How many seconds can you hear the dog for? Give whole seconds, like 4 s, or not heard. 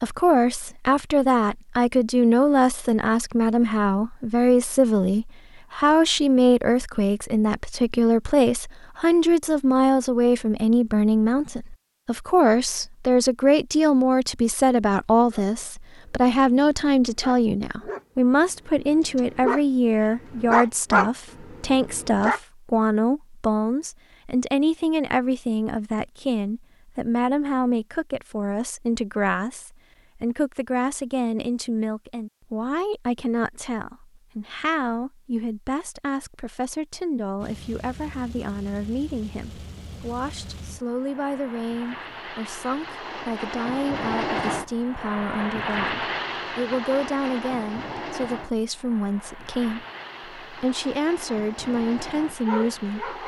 8 s.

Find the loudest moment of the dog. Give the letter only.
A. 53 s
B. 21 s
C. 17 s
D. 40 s
B.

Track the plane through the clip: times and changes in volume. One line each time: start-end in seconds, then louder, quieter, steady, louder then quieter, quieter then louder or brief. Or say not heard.
37.4-53.2 louder then quieter.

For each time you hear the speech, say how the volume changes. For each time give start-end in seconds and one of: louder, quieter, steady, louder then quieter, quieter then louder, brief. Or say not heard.
0.0-53.1 quieter.